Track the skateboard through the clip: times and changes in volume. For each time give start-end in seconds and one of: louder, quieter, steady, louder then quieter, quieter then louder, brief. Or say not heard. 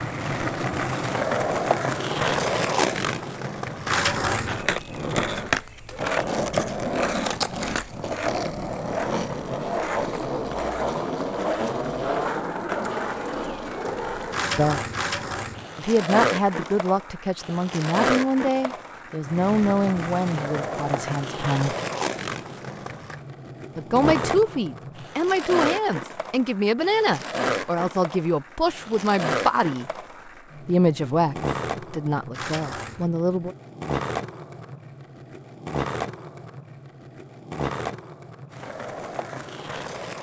0.0-40.1 quieter.